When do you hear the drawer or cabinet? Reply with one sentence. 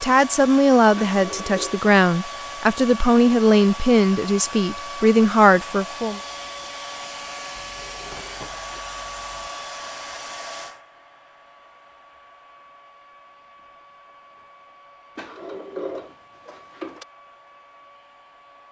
You can hear the drawer or cabinet from 0.9 to 1.8 s, from 7.5 to 9.5 s and from 15.2 to 17.1 s.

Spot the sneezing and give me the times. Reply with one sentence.
You can't hear the sneezing here.